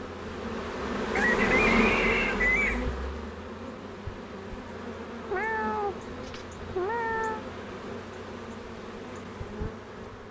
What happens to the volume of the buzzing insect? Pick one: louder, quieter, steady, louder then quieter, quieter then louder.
quieter.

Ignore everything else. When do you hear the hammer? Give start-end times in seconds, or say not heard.
not heard.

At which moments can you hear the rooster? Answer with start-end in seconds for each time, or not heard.
1.1-2.9.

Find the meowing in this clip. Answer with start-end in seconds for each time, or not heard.
5.3-7.4.